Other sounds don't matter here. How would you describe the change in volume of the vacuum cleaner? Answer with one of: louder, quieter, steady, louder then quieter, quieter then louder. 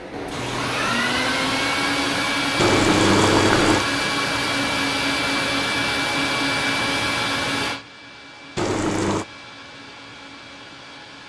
quieter.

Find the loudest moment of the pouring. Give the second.
3 s.